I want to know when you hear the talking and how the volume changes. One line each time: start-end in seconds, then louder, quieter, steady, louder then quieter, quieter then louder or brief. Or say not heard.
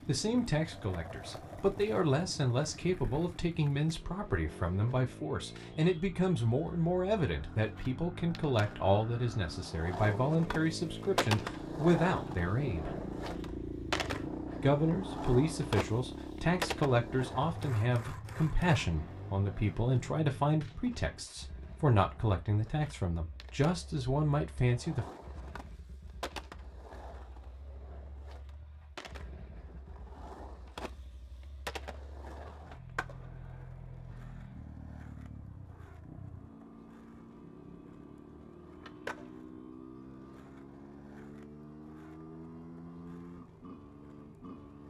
0.1-12.9 steady
14.6-25.1 steady.